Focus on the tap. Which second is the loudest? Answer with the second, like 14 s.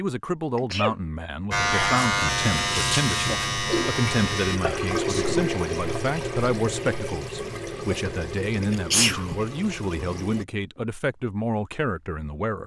5 s.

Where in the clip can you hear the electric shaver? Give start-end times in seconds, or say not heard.
1.5-4.6.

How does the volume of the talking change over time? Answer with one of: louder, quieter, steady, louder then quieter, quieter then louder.
steady.